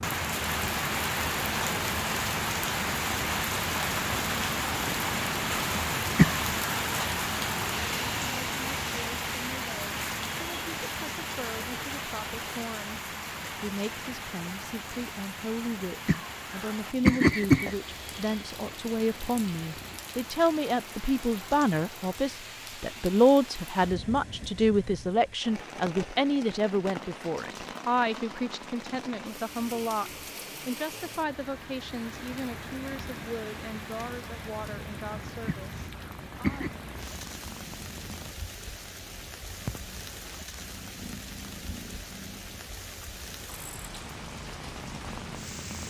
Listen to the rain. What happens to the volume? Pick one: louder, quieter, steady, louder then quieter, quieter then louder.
quieter.